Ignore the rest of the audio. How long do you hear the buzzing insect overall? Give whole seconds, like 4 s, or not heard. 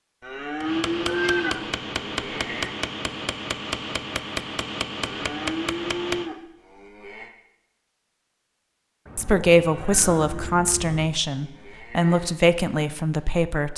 not heard.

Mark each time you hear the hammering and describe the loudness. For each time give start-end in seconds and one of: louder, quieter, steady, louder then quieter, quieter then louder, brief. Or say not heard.
0.6-6.3 steady.